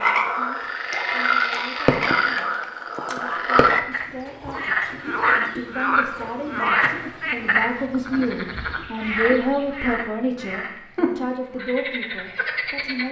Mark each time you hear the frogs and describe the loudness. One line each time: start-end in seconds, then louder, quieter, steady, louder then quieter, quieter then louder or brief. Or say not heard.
0.0-13.0 quieter.